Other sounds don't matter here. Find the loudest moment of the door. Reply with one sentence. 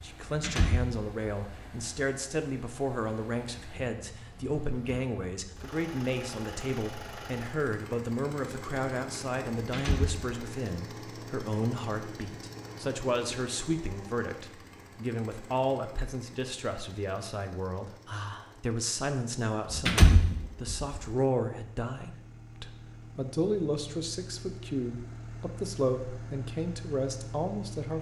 The volume of the door peaks at 20 seconds.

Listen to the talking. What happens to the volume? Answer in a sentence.
The volume of the talking stays about the same.